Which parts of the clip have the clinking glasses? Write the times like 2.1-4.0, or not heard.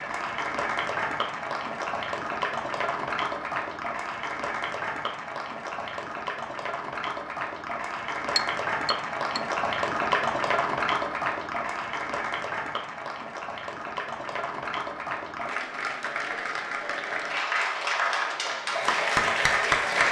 8.3-9.4.